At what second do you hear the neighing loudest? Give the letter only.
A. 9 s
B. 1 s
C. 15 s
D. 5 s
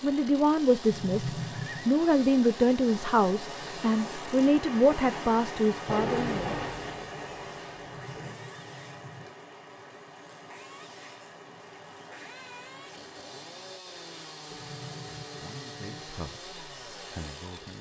B.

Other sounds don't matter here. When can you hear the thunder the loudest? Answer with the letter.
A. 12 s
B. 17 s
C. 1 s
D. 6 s
D.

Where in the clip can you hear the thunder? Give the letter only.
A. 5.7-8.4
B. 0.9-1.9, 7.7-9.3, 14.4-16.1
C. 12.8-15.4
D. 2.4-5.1
A.